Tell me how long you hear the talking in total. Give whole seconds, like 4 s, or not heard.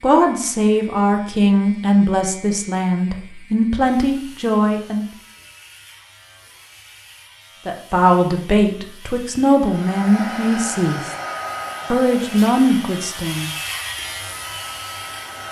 10 s.